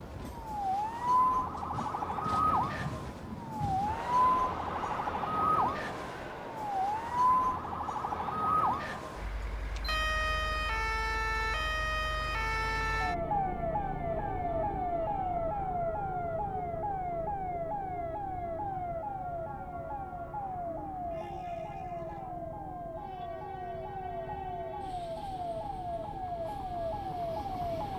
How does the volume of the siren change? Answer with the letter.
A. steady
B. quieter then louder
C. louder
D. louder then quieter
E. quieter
E.